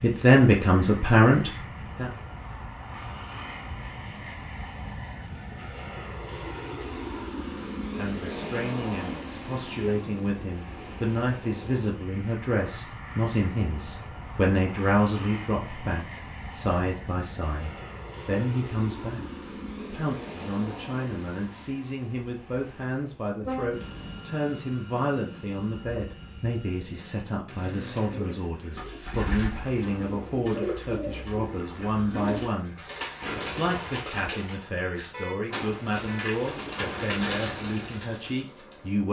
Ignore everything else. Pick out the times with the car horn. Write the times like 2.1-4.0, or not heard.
9.4-10.2, 23.4-24.2, 35.1-36.3.